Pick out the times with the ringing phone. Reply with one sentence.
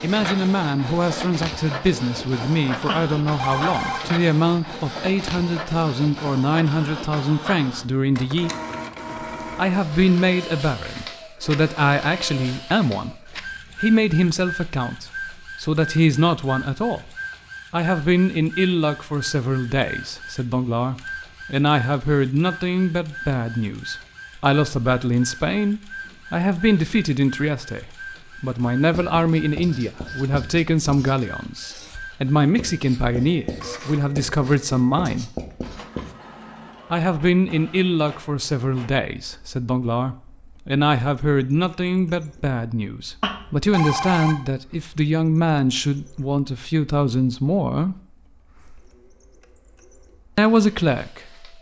The ringing phone can be heard from 2.9 to 4.0 s and from 43.2 to 44.4 s.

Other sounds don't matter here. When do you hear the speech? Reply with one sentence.
You can hear the speech from 0.0 to 8.5 s, from 9.6 to 17.1 s, from 17.7 to 35.3 s, from 36.9 to 48.0 s and from 50.4 to 51.5 s.